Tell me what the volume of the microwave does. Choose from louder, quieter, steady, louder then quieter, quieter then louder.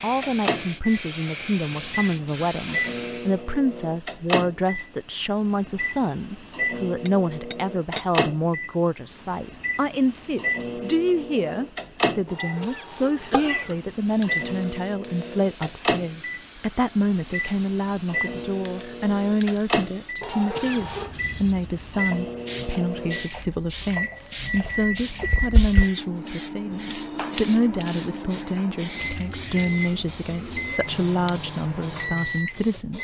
steady.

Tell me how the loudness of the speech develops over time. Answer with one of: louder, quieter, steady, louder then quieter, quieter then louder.
steady.